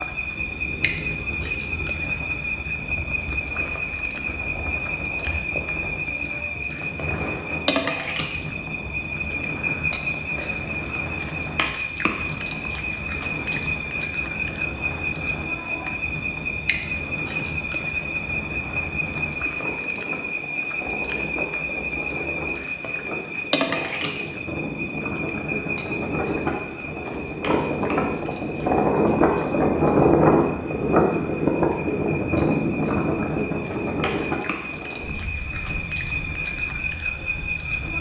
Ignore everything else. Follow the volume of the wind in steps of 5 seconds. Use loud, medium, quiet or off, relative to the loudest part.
quiet, quiet, quiet, quiet, quiet, loud, loud, quiet.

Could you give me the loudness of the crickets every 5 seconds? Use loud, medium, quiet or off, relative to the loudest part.
loud, loud, loud, loud, loud, medium, medium, loud.